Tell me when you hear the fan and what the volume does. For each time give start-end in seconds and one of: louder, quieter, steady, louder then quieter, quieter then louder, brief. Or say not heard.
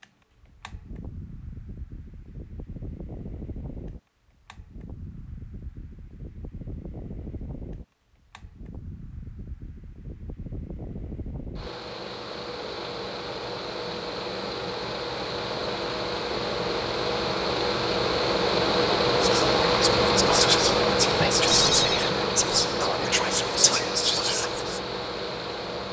0.0-25.8 louder.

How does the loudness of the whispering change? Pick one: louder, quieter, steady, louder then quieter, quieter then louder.
steady.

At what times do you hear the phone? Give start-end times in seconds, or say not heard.
21.4-22.1.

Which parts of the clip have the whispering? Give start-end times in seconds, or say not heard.
19.2-24.8.